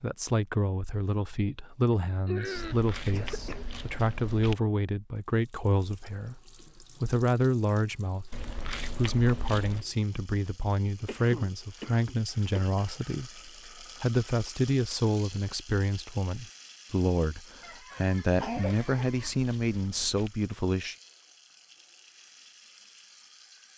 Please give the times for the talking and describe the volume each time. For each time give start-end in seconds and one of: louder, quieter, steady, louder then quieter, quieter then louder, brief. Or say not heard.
0.0-20.9 steady.